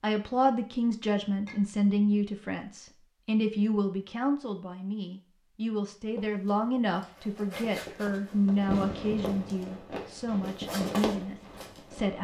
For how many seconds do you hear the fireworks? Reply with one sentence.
The fireworks can be heard for 4 seconds in total.